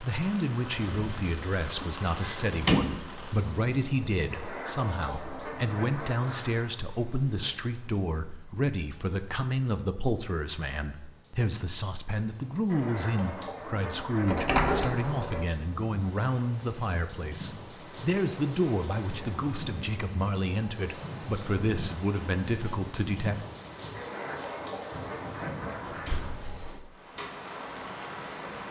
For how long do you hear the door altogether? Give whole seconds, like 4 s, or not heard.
3 s.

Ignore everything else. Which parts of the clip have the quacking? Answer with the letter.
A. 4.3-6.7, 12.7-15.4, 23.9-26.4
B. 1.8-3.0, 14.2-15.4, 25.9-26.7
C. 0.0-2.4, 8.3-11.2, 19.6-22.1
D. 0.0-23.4
A.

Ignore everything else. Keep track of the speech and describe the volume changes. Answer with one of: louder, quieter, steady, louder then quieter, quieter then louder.
steady.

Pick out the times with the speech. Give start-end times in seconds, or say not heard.
0.0-23.4.